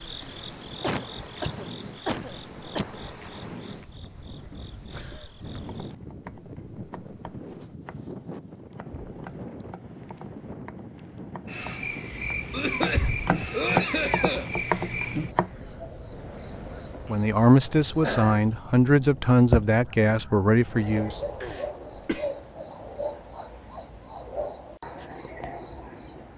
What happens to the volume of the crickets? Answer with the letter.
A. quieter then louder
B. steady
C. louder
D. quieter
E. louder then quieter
C.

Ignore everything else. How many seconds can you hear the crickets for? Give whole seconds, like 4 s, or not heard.
26 s.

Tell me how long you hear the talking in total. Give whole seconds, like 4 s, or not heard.
4 s.